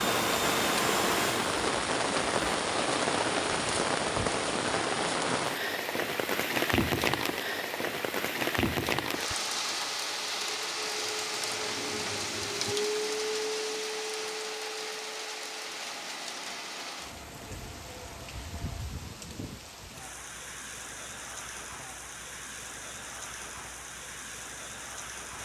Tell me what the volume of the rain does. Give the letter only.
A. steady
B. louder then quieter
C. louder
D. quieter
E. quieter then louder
D.